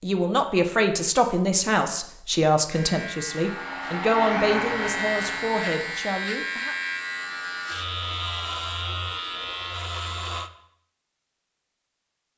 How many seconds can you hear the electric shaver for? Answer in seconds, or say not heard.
8 s.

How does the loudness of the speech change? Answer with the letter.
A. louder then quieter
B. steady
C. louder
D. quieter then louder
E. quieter
E.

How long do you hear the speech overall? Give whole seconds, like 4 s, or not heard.
7 s.